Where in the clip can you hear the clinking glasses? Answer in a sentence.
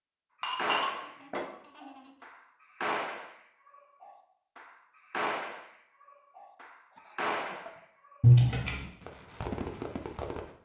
You can hear the clinking glasses from 0.4 to 1.4 s and from 8.2 to 8.8 s.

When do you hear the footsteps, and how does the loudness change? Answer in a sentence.
You can't hear the footsteps here.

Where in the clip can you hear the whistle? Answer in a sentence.
You can't hear the whistle here.